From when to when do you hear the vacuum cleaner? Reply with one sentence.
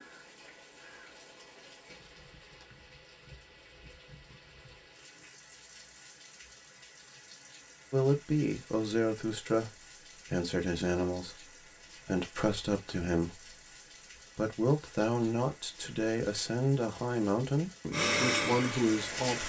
You can hear the vacuum cleaner from 17.9 to 19.4 s.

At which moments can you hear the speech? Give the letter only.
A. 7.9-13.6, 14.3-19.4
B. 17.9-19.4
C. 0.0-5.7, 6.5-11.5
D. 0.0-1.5
A.